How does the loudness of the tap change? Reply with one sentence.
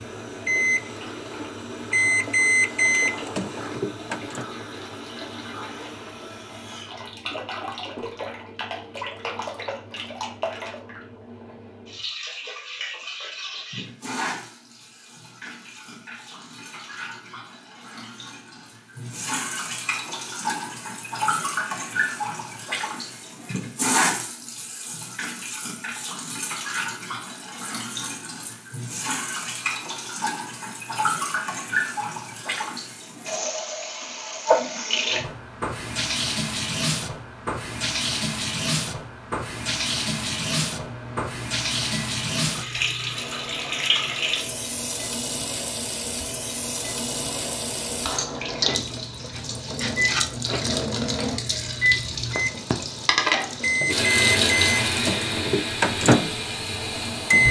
The loudness of the tap goes up.